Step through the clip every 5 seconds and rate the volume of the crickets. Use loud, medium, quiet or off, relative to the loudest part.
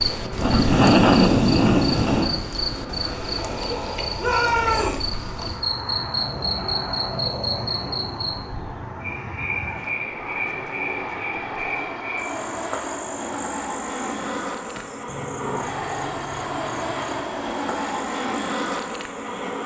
loud, medium, quiet, quiet.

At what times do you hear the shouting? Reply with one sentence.
You can hear the shouting from 4.2 to 5.0 s.